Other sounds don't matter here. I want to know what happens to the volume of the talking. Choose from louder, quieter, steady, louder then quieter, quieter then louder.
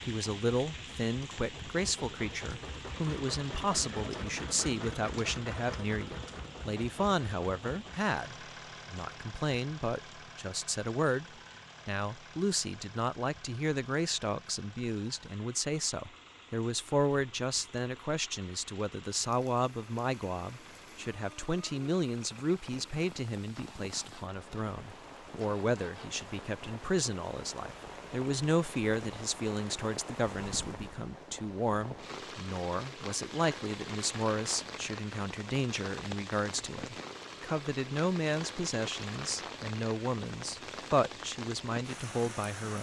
steady.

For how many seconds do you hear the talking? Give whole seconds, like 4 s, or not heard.
42 s.